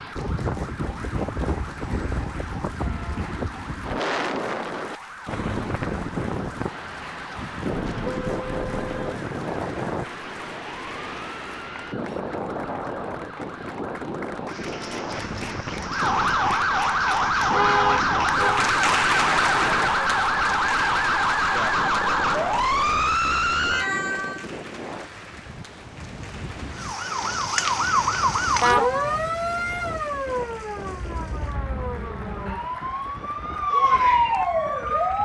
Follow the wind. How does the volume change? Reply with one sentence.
The volume of the wind goes down.